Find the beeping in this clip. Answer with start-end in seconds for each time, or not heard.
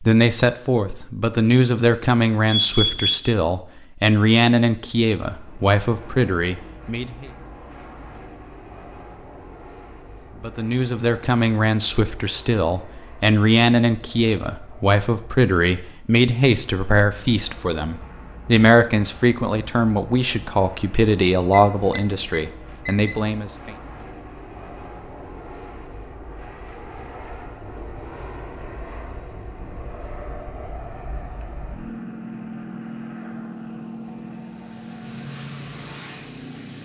2.5-3.4, 21.5-23.2.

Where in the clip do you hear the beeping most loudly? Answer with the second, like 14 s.
3 s.